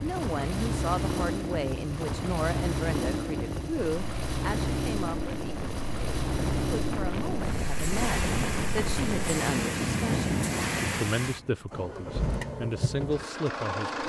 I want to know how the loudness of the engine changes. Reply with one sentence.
The volume of the engine stays about the same.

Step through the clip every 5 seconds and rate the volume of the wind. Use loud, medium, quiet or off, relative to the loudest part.
medium, loud, loud.